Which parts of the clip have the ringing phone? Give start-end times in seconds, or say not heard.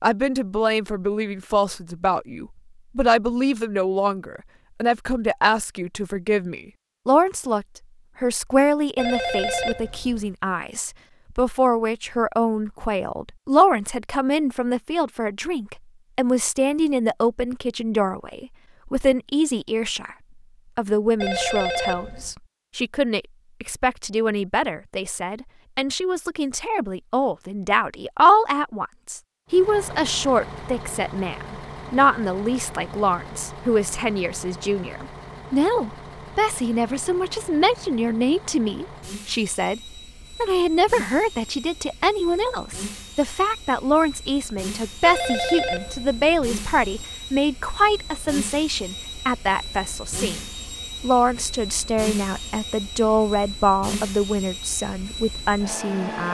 8.9-10.3, 21.2-22.4, 45.0-47.0.